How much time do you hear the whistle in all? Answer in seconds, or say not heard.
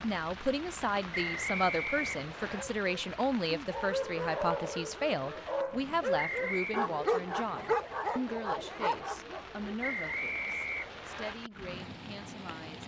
4 s.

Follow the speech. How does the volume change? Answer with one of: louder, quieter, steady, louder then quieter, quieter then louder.
quieter.